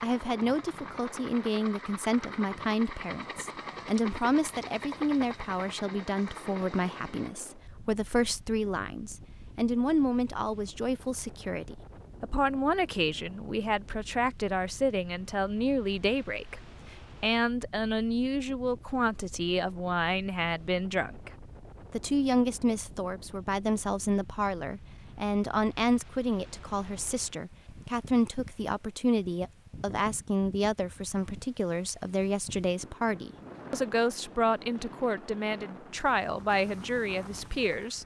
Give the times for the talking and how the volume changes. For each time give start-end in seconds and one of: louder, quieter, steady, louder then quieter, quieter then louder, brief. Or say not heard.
0.0-21.3 steady
21.9-38.0 steady.